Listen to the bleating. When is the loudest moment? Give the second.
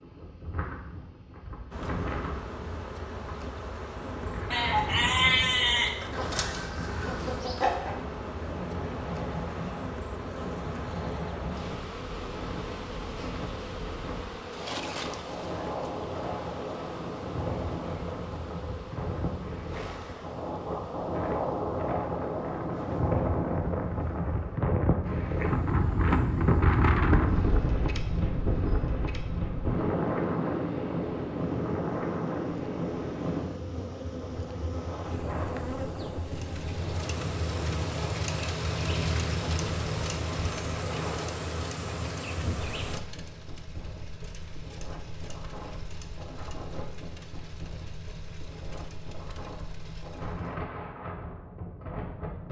5 s.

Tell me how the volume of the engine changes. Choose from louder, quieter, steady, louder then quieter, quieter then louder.
quieter.